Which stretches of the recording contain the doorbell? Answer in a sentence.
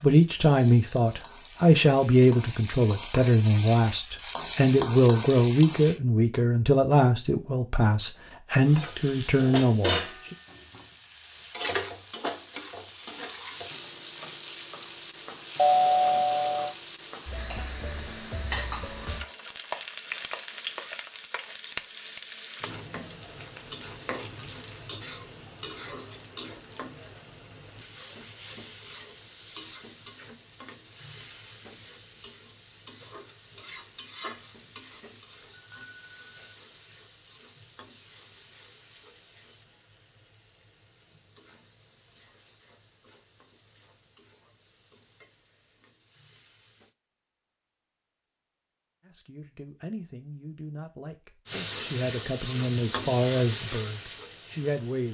The doorbell can be heard from 15.6 to 16.8 s and from 35.5 to 36.4 s.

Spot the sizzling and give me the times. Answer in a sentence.
You can hear the sizzling from 0.0 to 6.0 s, from 8.6 to 47.0 s and from 51.5 to 55.0 s.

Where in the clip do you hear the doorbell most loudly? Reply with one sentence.
The volume of the doorbell peaks at 16 seconds.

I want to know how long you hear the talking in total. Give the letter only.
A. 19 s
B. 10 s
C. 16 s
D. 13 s
C.